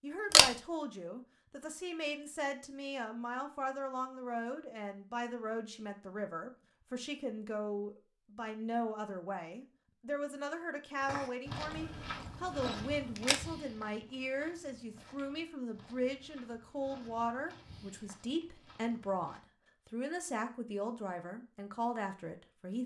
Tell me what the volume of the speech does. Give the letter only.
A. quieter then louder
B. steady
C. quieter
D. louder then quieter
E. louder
B.